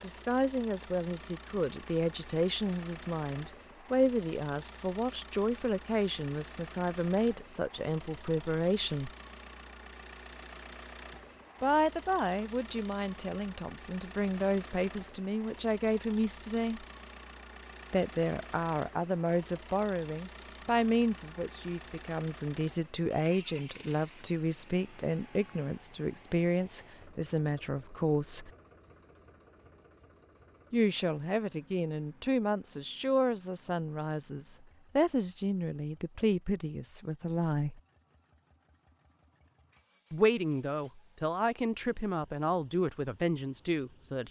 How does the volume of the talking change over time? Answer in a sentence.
The loudness of the talking stays about the same.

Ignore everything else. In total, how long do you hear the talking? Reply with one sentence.
The talking can be heard for 36 seconds in total.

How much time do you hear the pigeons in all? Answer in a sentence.
You can't hear the pigeons here.